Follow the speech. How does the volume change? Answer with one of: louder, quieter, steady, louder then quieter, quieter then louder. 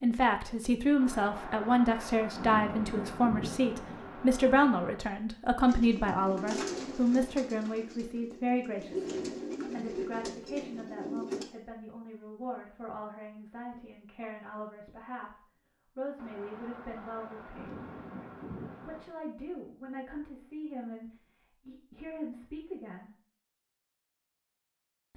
quieter.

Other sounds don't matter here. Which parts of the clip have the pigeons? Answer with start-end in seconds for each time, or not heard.
5.7-11.4.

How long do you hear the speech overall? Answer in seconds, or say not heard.
22 s.